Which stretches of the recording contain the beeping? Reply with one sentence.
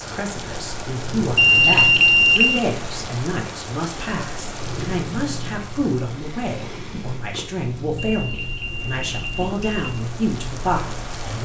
The beeping can be heard from 1.4 to 2.6 s and from 8.1 to 10.0 s.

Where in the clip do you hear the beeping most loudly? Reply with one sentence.
The volume of the beeping peaks at 2 seconds.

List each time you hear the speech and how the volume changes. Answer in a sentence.
You can hear the speech from 0.0 to 11.4 s, at a steady volume.